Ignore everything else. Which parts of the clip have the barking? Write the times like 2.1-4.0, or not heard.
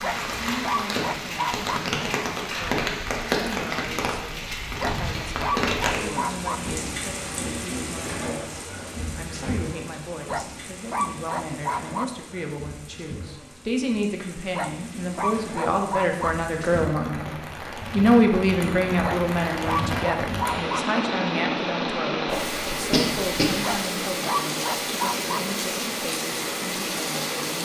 0.0-1.8, 4.8-6.6, 10.2-12.1, 14.6-16.4, 19.0-20.8, 23.6-25.4.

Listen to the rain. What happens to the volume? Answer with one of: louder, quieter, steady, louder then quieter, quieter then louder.
quieter then louder.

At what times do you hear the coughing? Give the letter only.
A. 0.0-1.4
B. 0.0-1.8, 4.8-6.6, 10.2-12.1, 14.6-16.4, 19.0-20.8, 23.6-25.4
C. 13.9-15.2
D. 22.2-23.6
D.